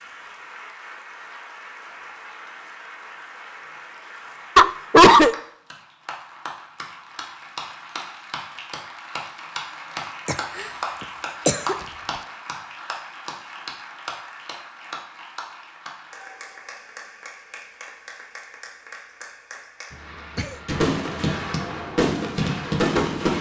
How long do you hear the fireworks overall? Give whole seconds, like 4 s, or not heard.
3 s.